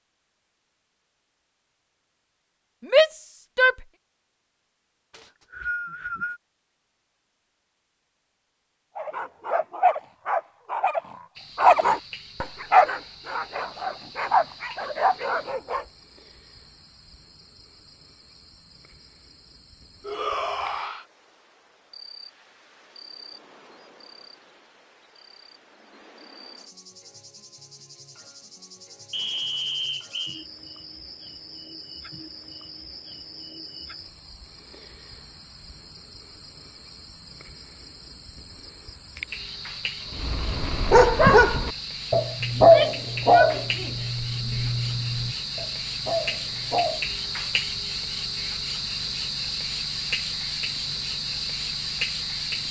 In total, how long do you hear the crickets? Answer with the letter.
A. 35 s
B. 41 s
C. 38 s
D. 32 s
B.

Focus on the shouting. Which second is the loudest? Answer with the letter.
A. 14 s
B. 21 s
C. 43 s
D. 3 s
D.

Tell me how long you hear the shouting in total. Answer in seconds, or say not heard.
4 s.